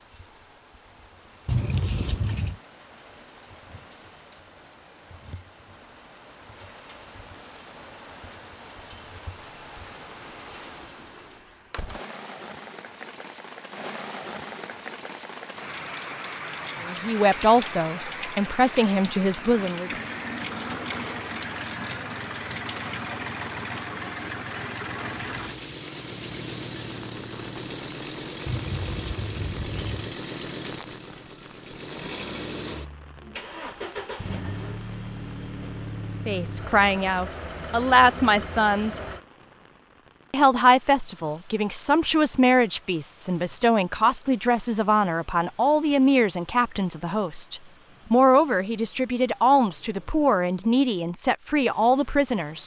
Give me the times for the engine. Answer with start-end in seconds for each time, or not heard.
19.8-39.2.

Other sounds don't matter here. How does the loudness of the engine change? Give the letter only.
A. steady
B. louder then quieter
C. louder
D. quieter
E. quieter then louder
A.